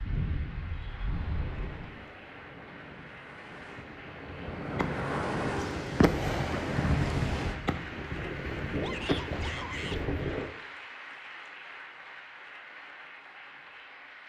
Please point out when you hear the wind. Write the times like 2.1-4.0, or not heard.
0.0-10.5.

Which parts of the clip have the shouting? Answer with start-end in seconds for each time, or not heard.
8.8-10.0.